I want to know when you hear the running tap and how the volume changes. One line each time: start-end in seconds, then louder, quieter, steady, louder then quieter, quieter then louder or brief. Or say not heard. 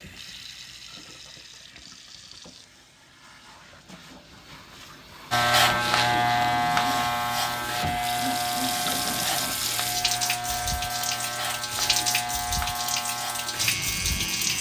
0.0-14.5 louder.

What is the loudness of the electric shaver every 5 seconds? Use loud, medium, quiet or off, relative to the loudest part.
off, loud, medium.